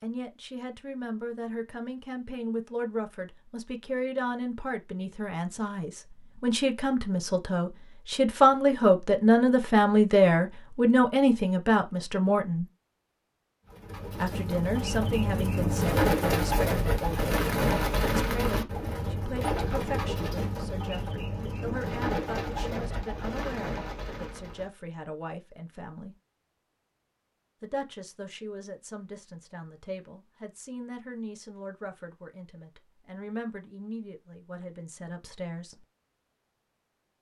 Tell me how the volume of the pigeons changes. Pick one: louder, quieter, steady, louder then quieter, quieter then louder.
quieter.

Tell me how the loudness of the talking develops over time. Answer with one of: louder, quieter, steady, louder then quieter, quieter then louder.
louder then quieter.